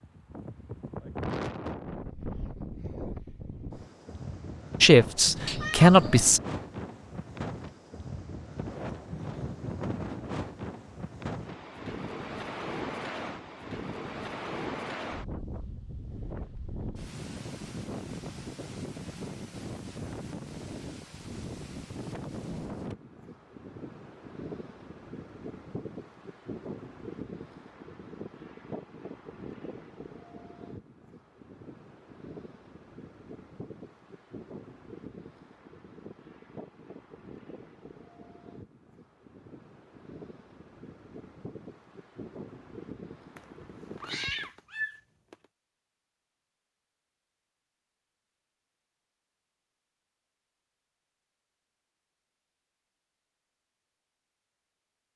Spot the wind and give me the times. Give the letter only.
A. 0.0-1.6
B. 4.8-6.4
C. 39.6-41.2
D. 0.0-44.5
D.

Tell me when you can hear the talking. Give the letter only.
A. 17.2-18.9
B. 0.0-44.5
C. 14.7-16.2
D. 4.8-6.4
D.